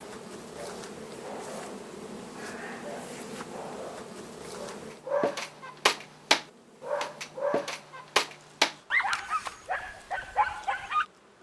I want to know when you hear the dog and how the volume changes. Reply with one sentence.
The dog can be heard from 0.6 to 11.1 s, getting louder.